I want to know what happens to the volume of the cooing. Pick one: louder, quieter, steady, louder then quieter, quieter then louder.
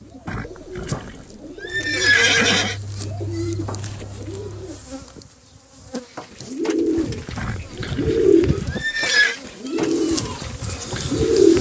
louder.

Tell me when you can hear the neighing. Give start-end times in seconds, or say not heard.
0.2-2.8, 7.3-9.3.